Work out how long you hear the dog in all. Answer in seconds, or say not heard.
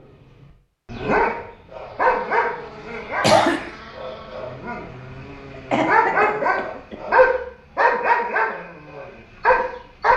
10 s.